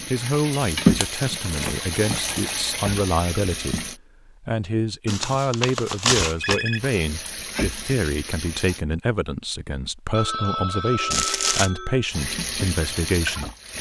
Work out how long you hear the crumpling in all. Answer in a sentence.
You can hear the crumpling for 4 seconds altogether.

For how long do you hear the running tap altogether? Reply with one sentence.
The running tap can be heard for 8 seconds in total.